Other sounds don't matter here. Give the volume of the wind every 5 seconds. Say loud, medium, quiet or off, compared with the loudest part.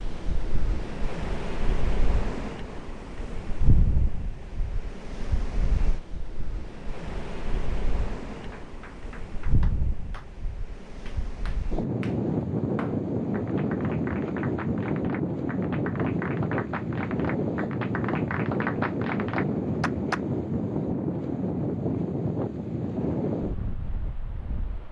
medium, medium, loud, loud, loud.